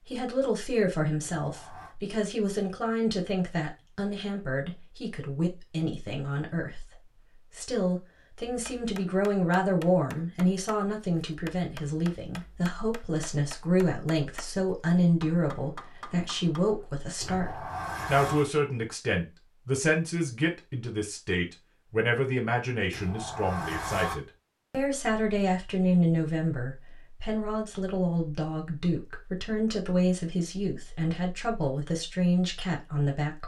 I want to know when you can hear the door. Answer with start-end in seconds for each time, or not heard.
1.4-1.9, 17.2-18.5, 22.9-24.1.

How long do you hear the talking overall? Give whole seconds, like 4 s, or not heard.
33 s.